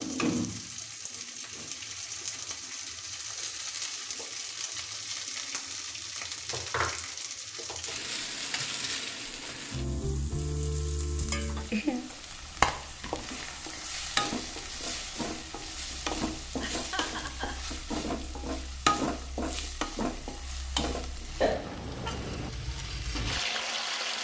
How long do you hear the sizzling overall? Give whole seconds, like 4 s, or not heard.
24 s.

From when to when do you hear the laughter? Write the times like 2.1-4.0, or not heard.
16.6-17.6.